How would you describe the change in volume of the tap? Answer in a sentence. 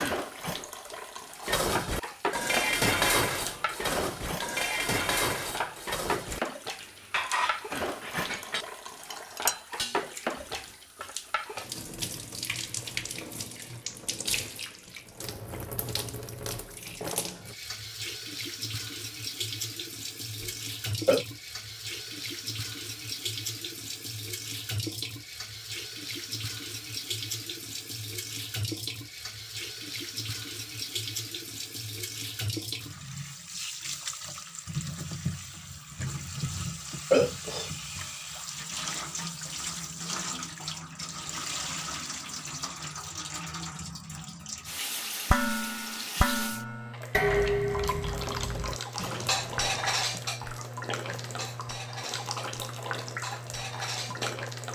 The volume of the tap stays about the same.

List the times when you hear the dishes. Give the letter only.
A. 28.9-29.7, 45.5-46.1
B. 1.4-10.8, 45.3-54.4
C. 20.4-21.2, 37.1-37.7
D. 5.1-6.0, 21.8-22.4
B.